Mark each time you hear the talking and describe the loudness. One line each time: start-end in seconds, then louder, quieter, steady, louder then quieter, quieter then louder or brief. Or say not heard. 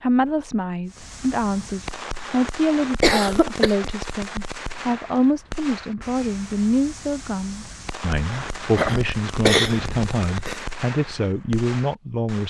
0.0-12.4 steady.